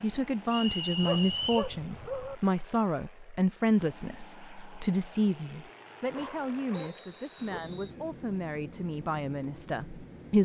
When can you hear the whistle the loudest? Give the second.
1 s.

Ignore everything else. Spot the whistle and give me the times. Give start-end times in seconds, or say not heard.
0.5-1.7, 6.7-7.9.